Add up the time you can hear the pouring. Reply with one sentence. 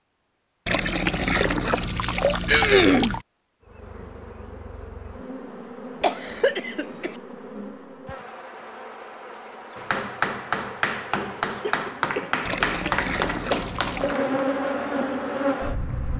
The pouring can be heard for 4 seconds in total.